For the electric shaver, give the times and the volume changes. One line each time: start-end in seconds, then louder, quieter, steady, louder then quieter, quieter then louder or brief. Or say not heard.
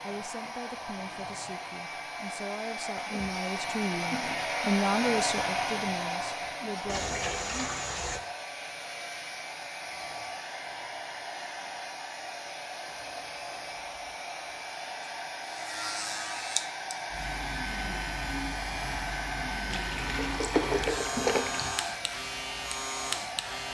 15.4-23.6 steady.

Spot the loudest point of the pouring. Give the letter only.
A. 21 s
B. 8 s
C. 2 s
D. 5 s
A.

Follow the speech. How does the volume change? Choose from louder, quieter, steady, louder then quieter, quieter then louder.
louder then quieter.